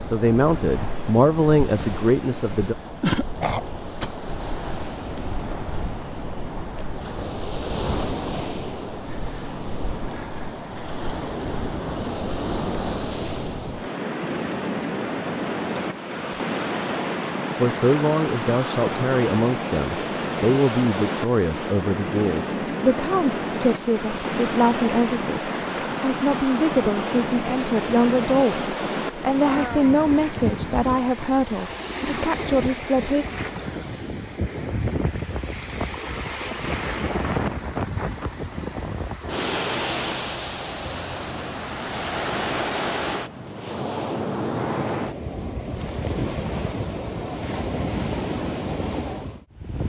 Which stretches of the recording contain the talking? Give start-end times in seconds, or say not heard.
0.0-2.8, 17.6-33.2.